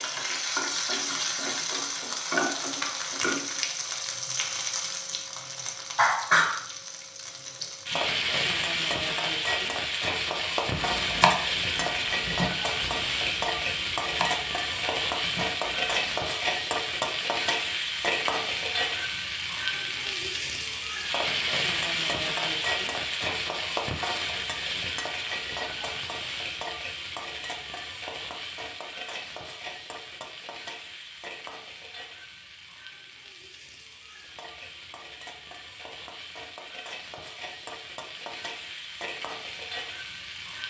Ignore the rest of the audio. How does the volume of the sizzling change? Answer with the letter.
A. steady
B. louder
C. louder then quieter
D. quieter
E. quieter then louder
D.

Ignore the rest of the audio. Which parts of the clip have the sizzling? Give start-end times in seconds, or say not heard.
0.0-40.6.